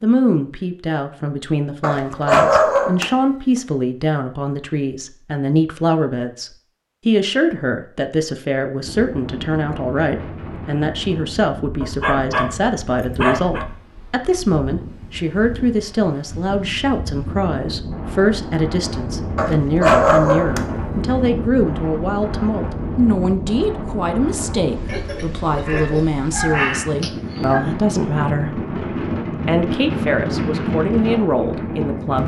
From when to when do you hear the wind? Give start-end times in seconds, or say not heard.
8.8-32.2.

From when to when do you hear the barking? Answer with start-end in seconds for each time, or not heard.
1.8-3.1, 11.8-13.7, 19.4-20.6, 24.9-27.6.